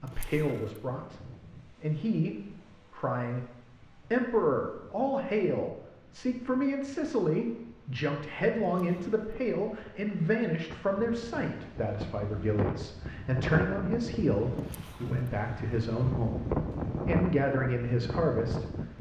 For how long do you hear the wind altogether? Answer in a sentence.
The wind can be heard for 19 seconds in total.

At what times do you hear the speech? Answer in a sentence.
You can hear the speech from 0.0 to 18.6 s.